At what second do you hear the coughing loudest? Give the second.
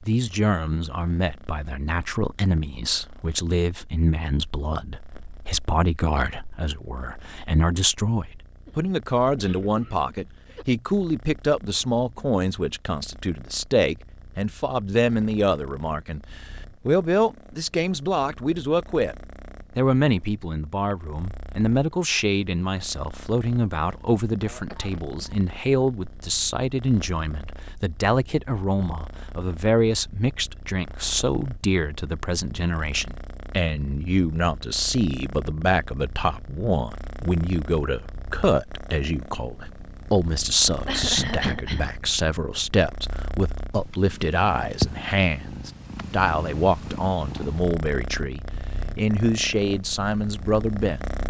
41 s.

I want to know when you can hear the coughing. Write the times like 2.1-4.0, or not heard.
8.7-10.7, 24.4-25.4, 40.9-41.9.